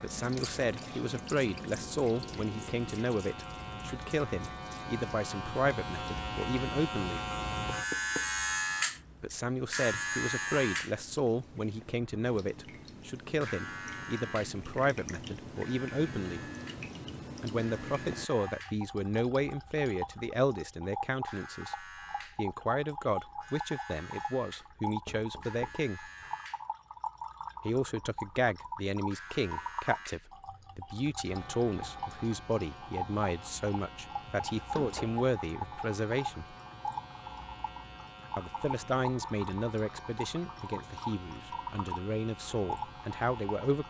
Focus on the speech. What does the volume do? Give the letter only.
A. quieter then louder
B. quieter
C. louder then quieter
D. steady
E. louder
D.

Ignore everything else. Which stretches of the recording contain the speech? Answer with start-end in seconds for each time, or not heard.
0.0-7.2, 9.2-16.4, 17.4-21.8, 22.4-26.1, 27.6-36.5, 38.4-43.8.